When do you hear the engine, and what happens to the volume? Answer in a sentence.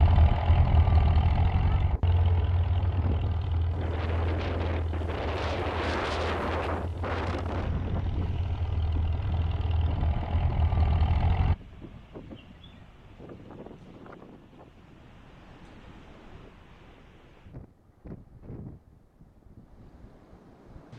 The engine can be heard from 0.0 to 11.6 s, getting quieter then louder.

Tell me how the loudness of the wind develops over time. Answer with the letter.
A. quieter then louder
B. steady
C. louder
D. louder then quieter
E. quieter
E.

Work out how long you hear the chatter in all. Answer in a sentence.
You can't hear the chatter here.